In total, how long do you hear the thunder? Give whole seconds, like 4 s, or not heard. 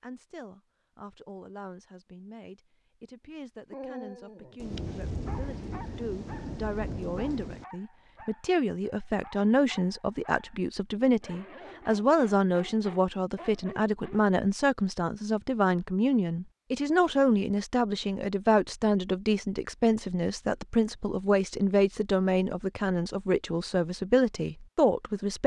3 s.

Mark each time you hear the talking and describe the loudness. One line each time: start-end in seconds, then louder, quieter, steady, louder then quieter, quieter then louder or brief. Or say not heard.
0.0-25.4 louder.